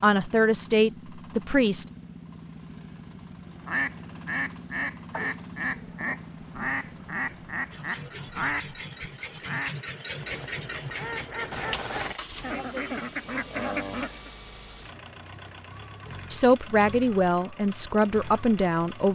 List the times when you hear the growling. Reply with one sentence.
The growling can be heard from 5.1 to 6.2 s and from 11.5 to 12.2 s.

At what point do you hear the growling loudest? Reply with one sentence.
The volume of the growling peaks at 12 seconds.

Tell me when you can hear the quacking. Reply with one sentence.
The quacking can be heard from 3.6 to 14.3 s.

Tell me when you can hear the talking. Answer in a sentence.
You can hear the talking from 0.0 to 1.9 s and from 16.3 to 19.0 s.